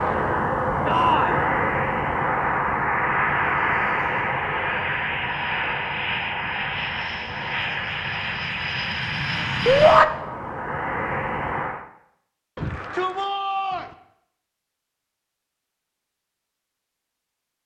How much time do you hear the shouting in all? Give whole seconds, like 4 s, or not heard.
2 s.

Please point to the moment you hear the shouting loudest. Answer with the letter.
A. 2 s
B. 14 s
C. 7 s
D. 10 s
D.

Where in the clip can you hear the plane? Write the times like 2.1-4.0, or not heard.
0.0-11.8.